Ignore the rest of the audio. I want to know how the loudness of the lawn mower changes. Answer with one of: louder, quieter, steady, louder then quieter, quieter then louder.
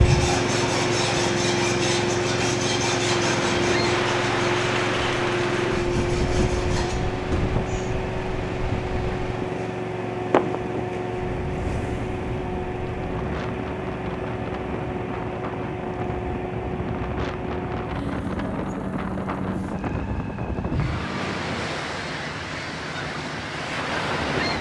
quieter.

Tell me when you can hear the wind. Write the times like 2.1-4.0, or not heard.
0.0-24.5.